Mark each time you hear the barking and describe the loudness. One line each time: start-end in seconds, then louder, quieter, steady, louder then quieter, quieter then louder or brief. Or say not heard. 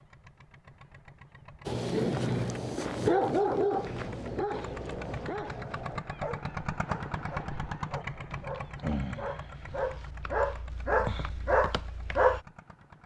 1.6-12.4 quieter then louder.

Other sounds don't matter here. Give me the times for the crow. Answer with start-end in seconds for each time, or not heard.
not heard.